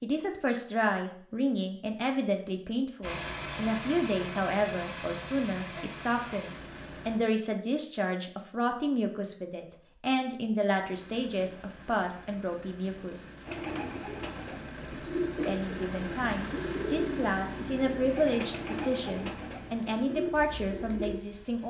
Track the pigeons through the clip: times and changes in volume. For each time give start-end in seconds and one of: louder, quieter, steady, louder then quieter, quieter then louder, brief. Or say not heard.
13.4-21.2 steady.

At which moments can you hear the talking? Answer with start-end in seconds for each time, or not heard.
0.0-13.3, 15.4-21.6.